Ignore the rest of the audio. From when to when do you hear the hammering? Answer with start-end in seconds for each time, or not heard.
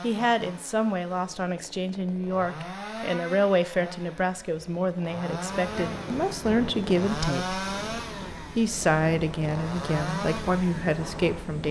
not heard.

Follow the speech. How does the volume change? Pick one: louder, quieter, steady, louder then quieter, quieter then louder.
steady.